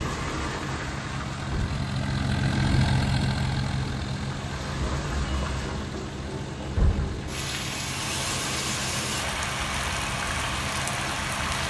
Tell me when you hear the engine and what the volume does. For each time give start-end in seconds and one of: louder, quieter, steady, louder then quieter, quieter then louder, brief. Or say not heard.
0.2-11.6 quieter.